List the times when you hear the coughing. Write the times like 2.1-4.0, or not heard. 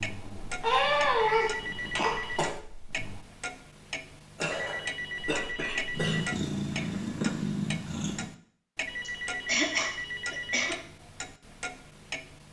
0.6-2.5, 4.3-6.2, 9.1-10.8.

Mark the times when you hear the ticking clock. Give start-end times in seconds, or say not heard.
0.0-12.4.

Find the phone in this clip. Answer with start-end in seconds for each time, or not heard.
1.3-2.5, 4.5-6.5, 8.8-10.7.